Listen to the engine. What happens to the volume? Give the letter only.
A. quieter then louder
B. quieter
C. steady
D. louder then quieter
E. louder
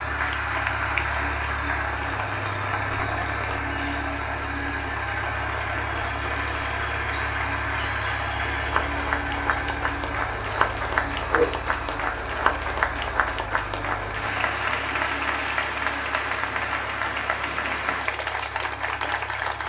B.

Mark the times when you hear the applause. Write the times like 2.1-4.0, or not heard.
0.0-19.6.